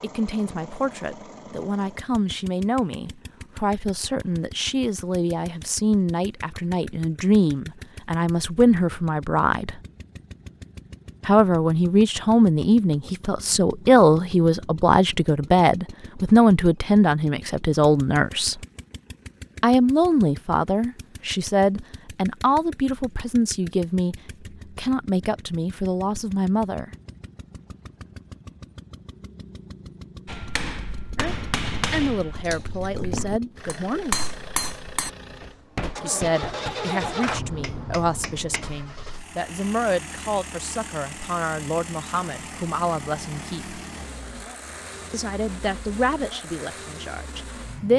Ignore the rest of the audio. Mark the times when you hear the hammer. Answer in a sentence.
The hammer can be heard from 30.2 to 38.6 s.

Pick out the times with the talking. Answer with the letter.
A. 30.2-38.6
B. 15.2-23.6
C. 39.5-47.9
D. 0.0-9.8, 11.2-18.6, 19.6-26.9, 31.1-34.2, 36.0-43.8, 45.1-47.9
D.